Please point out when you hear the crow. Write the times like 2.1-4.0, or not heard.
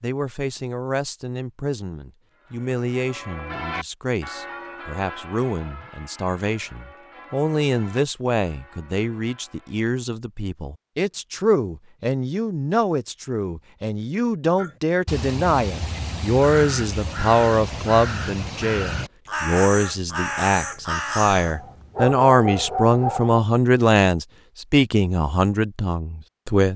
14.6-21.8.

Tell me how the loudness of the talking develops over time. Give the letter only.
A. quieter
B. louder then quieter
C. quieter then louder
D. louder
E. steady
D.